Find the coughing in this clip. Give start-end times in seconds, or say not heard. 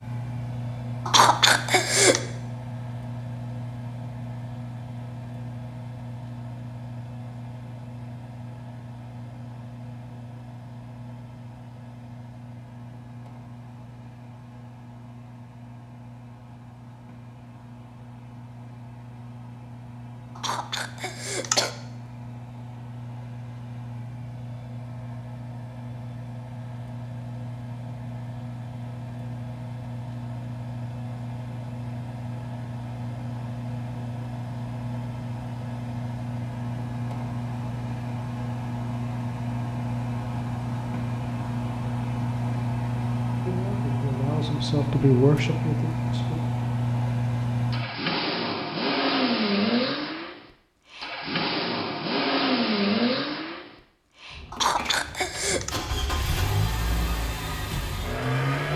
1.1-2.2, 20.4-21.7, 54.5-55.7.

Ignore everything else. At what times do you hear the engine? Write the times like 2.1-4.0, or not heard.
0.0-58.7.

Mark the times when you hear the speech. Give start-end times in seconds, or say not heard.
43.5-46.4.